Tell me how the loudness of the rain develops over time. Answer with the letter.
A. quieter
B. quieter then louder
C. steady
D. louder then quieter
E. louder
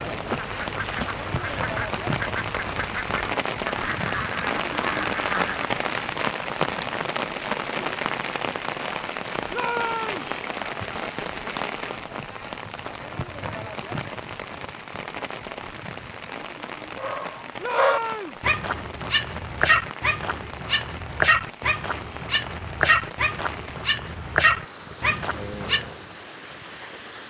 A.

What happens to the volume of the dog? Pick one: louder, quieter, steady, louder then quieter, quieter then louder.
steady.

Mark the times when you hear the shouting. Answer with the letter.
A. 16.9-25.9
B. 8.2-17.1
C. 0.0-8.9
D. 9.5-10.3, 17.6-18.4
D.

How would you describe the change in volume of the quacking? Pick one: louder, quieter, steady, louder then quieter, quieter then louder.
steady.